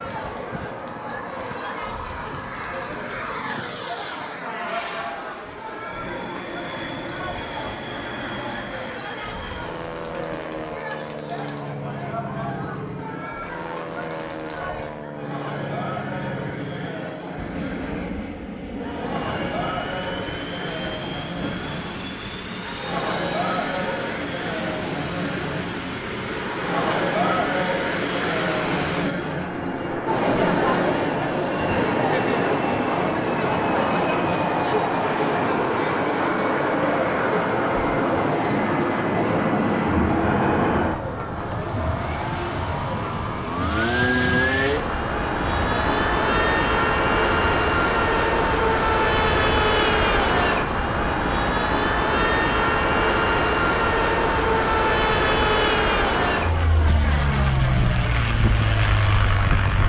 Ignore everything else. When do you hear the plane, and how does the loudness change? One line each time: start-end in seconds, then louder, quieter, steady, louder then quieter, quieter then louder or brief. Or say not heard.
0.0-59.8 louder.